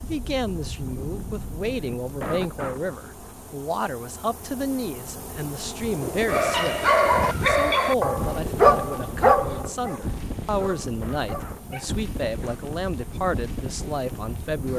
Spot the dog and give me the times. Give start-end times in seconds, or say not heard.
6.2-11.9.